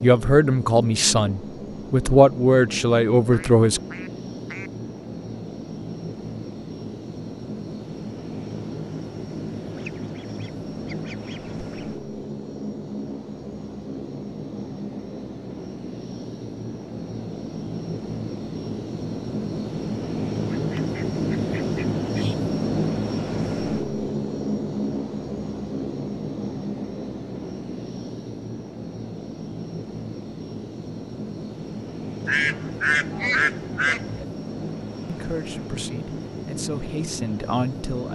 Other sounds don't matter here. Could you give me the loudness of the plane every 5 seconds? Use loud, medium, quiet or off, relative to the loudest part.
medium, medium, medium, medium, loud, medium, medium, medium.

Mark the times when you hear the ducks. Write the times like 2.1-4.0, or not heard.
3.3-4.7, 9.7-11.9, 20.4-22.4, 32.2-34.2.